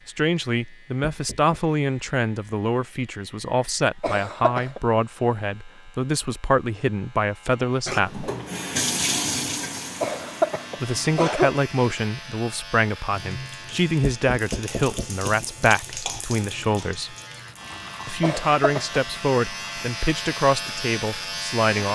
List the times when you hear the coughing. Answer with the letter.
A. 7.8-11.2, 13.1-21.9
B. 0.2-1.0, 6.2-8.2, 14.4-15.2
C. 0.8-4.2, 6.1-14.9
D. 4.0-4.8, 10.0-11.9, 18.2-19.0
D.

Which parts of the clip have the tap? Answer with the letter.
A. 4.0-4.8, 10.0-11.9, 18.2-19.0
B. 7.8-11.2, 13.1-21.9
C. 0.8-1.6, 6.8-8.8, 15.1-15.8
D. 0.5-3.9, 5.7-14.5
B.